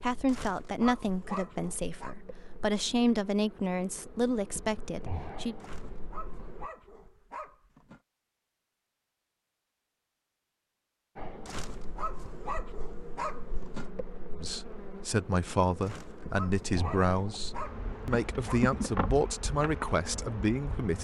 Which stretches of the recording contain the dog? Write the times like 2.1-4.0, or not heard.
0.2-2.1, 5.6-8.0, 11.4-13.9, 15.8-18.6.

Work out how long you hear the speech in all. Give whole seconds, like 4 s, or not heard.
12 s.